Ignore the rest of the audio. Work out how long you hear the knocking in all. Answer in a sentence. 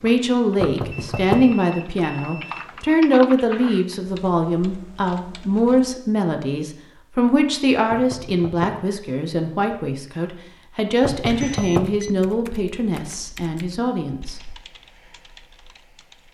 You can hear the knocking for 3 seconds altogether.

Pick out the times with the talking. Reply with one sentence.
The talking can be heard from 0.0 to 14.4 s.